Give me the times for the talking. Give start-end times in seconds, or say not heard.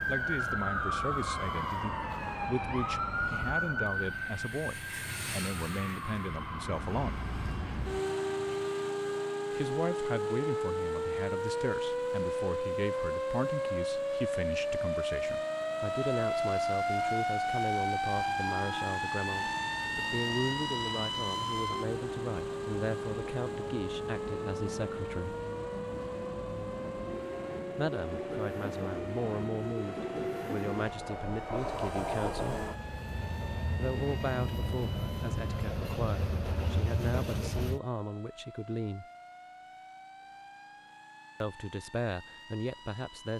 0.1-7.2, 9.5-25.4, 27.8-32.6, 33.8-39.0, 41.4-43.3.